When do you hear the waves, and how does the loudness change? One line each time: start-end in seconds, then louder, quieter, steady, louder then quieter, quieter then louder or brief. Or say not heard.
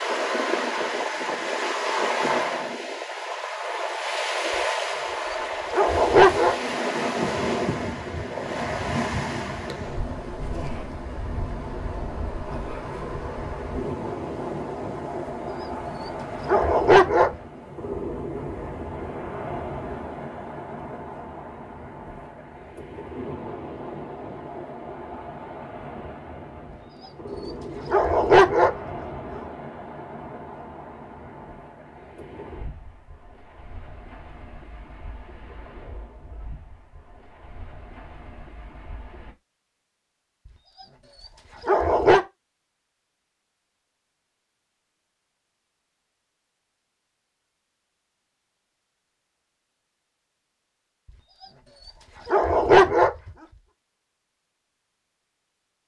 0.0-39.4 quieter.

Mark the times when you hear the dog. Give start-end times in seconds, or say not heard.
5.7-6.5, 16.4-17.3, 27.9-28.7, 41.6-42.2, 52.2-53.1.